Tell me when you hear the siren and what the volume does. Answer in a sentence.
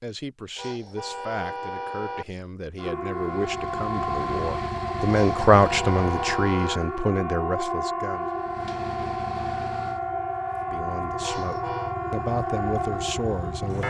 The siren can be heard from 2.8 to 13.8 s, at a steady volume.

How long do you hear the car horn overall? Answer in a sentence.
You can hear the car horn for 4 seconds altogether.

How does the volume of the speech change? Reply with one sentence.
The loudness of the speech goes up, then down.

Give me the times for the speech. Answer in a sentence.
The speech can be heard from 0.0 to 8.3 s and from 10.7 to 13.8 s.